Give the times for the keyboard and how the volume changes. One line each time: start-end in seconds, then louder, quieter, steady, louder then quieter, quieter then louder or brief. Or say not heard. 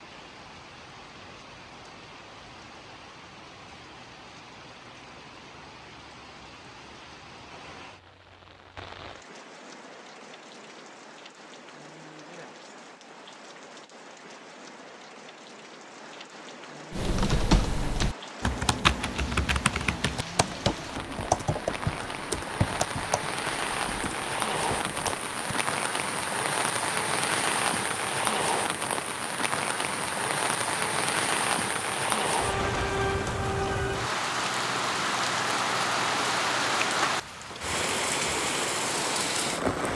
16.9-25.3 quieter.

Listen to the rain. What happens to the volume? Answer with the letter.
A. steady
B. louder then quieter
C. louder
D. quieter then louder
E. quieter
C.